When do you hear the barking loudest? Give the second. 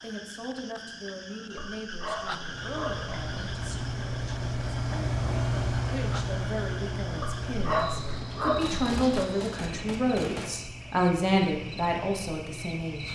8 s.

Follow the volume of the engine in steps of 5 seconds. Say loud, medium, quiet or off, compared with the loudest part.
loud, loud, quiet.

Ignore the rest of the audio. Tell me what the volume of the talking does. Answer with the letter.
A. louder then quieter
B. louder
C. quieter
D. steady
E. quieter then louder
B.